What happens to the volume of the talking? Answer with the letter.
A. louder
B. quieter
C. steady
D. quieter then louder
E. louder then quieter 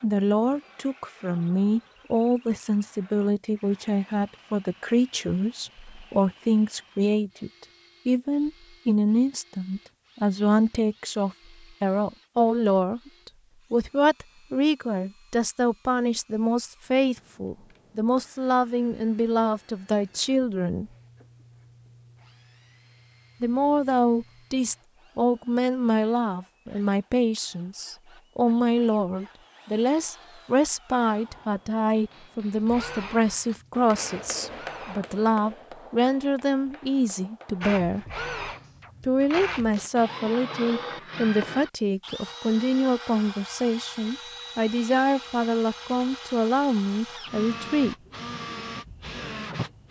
C.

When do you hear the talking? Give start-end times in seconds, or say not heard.
0.0-20.9, 23.4-38.0, 39.0-48.0.